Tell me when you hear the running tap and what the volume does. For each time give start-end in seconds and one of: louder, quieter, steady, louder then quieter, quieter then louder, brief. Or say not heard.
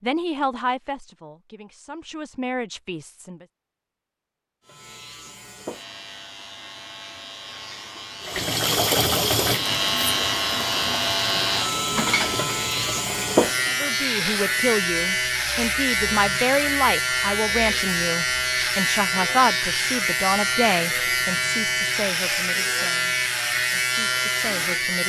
8.2-13.9 quieter.